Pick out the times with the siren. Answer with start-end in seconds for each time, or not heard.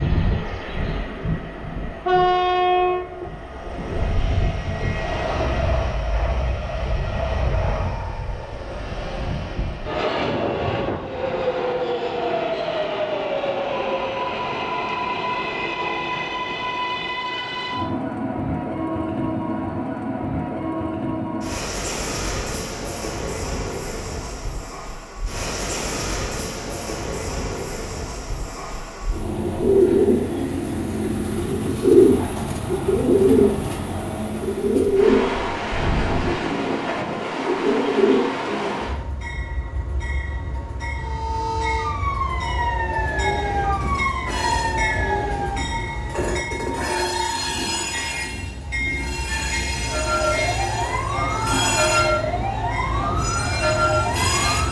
41.0-45.8, 49.8-54.6.